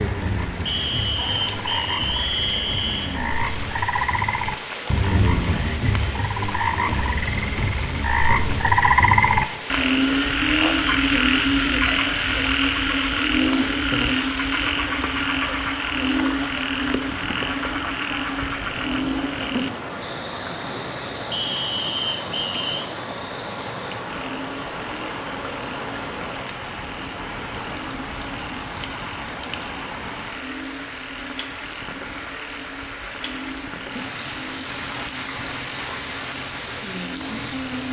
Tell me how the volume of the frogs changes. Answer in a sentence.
The loudness of the frogs goes up, then down.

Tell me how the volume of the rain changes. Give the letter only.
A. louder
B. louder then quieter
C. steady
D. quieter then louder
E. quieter
C.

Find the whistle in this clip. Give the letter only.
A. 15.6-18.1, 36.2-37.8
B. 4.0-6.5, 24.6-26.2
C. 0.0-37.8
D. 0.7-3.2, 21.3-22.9
D.